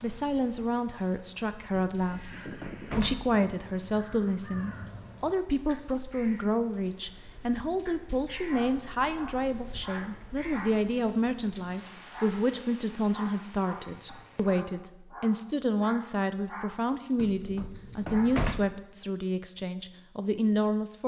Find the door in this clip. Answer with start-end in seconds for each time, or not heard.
1.7-3.4, 17.1-18.6.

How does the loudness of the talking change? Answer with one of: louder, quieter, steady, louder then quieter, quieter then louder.
steady.